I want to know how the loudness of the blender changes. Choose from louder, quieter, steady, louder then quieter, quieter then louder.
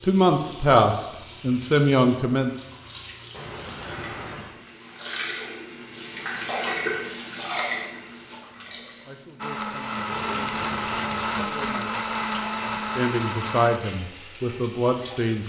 steady.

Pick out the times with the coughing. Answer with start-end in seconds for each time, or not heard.
3.3-4.6, 10.1-11.5.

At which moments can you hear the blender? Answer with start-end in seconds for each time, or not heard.
9.3-13.8.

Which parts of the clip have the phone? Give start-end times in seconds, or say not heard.
not heard.